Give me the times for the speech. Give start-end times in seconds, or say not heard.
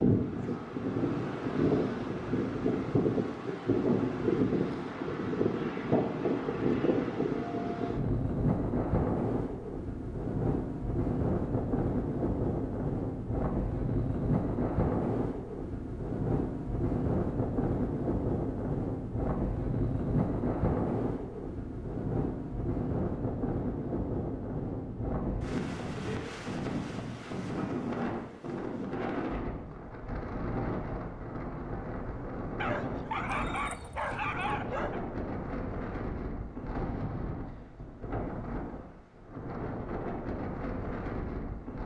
not heard.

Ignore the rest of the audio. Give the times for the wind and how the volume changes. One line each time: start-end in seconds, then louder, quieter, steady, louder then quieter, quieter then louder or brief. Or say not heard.
0.0-41.8 quieter.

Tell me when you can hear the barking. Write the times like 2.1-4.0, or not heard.
32.5-35.0.